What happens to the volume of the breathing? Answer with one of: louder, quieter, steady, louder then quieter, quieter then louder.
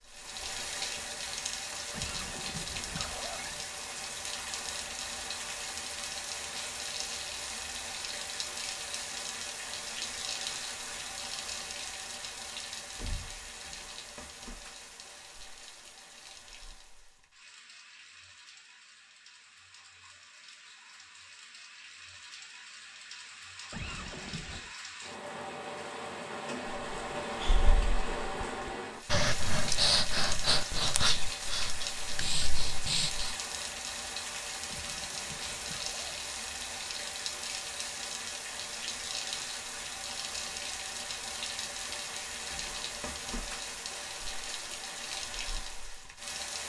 louder then quieter.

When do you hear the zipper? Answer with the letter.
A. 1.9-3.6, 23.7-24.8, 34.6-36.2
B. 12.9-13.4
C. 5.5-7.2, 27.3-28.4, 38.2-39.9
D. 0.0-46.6
A.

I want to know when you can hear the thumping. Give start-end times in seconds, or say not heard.
12.9-13.4.